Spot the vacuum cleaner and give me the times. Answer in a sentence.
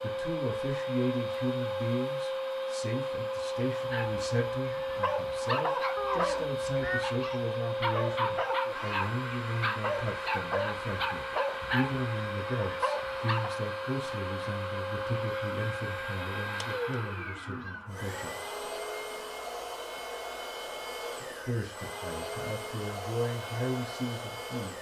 You can hear the vacuum cleaner from 0.0 to 24.7 s.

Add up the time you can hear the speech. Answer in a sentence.
You can hear the speech for 22 seconds altogether.